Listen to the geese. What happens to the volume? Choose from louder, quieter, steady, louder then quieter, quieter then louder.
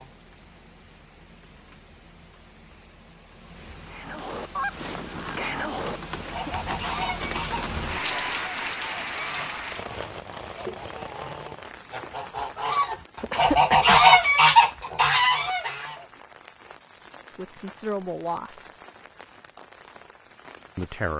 quieter then louder.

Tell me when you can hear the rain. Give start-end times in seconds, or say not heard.
0.0-21.1.